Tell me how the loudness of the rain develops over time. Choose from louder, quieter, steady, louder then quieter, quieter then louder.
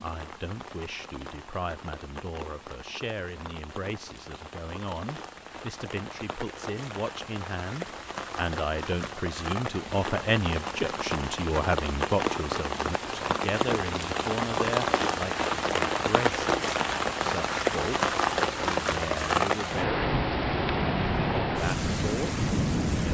louder.